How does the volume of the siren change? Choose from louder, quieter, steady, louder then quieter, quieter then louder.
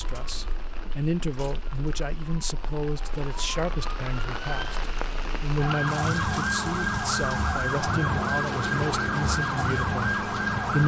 louder.